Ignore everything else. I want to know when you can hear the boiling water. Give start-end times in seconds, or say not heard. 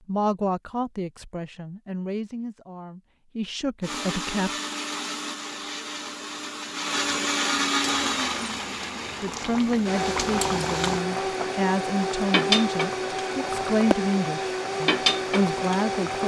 7.8-16.2.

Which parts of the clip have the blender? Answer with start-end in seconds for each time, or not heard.
3.8-16.2.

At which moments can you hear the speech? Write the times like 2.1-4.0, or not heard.
0.1-4.5, 9.2-16.2.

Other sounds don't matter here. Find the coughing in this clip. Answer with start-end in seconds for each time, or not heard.
not heard.